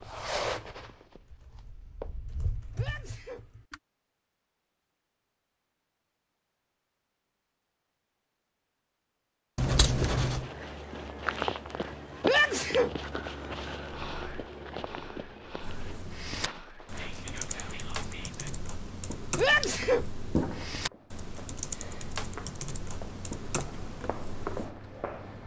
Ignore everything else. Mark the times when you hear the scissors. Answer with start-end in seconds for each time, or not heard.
9.6-10.5, 19.4-20.7.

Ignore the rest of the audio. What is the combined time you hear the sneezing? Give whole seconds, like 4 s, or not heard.
2 s.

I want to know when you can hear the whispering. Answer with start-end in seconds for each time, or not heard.
13.9-18.6.